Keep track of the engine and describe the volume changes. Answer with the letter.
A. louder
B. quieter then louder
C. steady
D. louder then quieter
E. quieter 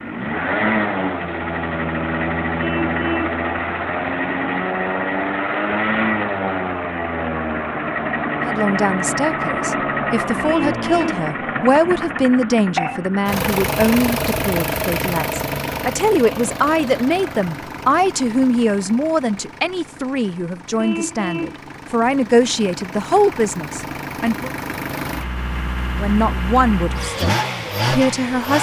B.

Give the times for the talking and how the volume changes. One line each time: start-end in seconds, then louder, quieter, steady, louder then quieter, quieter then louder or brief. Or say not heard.
8.4-24.5 steady
25.9-28.5 brief.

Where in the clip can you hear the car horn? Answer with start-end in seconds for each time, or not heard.
2.5-3.4, 10.4-11.2, 20.8-21.6.